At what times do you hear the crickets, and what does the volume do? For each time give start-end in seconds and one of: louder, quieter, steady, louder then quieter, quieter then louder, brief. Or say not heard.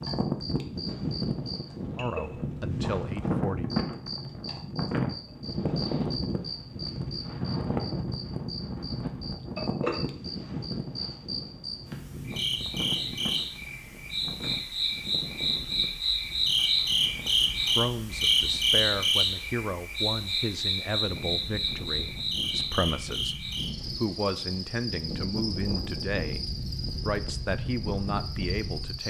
0.0-29.0 louder then quieter.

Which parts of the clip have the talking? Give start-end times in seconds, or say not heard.
1.9-3.7, 17.7-29.0.